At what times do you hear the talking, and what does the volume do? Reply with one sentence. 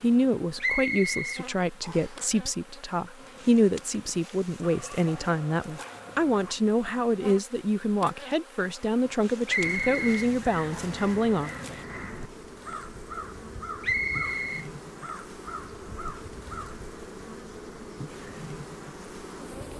You can hear the talking from 0.0 to 11.5 s, at a steady volume.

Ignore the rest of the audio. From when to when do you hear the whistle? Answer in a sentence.
You can hear the whistle from 0.6 to 2.2 s, from 9.4 to 11.0 s and from 13.8 to 14.7 s.